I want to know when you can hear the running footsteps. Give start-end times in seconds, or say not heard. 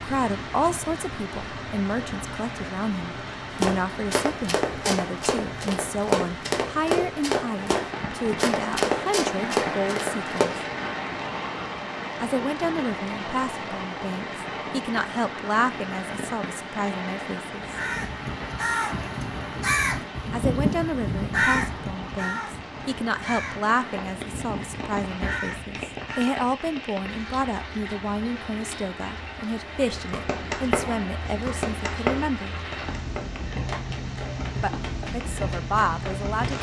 3.5-10.4, 29.9-36.5.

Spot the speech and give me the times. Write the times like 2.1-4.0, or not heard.
0.0-10.4, 12.2-17.8, 20.3-32.5, 34.6-36.5.